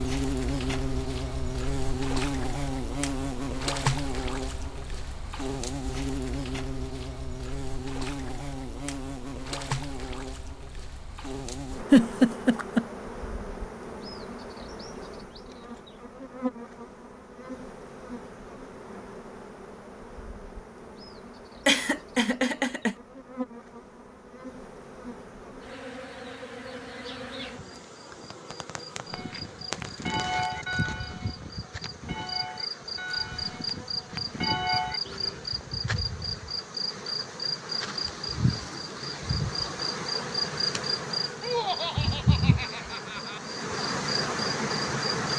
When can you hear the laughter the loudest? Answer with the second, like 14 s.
12 s.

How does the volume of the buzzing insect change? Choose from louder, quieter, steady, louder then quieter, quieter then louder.
quieter then louder.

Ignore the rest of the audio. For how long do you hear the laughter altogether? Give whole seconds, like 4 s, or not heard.
4 s.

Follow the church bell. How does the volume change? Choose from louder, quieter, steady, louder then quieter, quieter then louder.
quieter then louder.